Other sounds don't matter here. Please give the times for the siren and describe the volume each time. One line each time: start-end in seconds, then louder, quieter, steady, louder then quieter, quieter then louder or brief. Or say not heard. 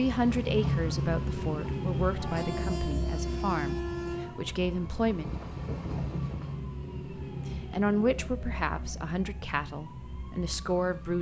0.0-11.1 quieter.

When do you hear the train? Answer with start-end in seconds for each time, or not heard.
0.0-6.7.